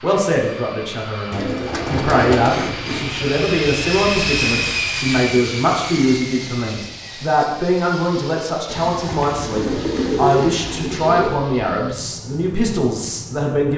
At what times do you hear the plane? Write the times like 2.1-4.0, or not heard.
0.0-13.6.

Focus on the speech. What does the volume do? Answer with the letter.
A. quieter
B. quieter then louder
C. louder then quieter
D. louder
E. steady
E.